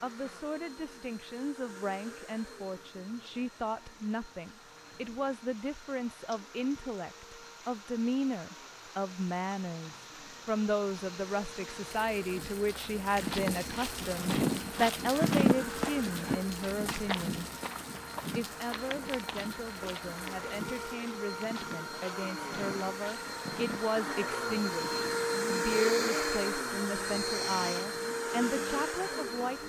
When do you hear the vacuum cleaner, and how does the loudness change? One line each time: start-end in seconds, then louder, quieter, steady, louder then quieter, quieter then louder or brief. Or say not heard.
0.0-29.6 louder.